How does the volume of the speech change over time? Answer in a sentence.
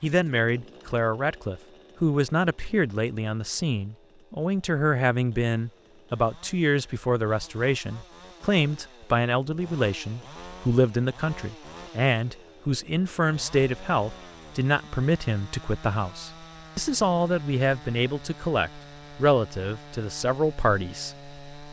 The loudness of the speech stays about the same.